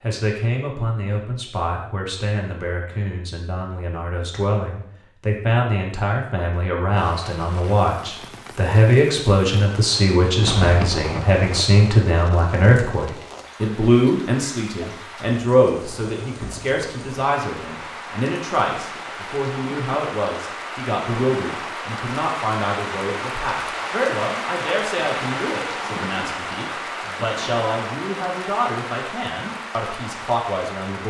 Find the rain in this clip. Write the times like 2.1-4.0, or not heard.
6.9-31.0.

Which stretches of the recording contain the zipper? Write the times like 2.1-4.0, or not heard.
10.4-11.7.